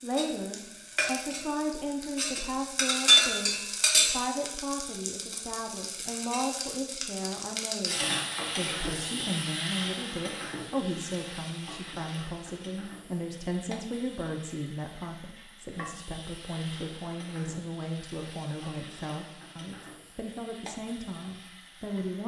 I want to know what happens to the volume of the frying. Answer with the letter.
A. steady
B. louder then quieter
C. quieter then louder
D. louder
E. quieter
E.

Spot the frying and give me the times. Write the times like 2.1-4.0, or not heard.
0.0-22.2.